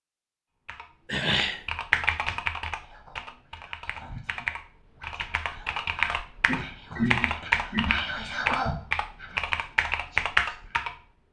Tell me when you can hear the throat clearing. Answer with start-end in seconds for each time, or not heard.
1.1-1.6, 6.5-8.0.